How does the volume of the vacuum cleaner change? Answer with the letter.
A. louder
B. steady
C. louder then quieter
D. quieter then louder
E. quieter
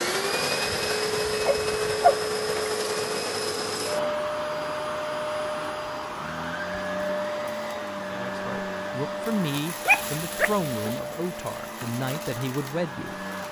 E.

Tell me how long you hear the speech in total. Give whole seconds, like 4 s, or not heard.
5 s.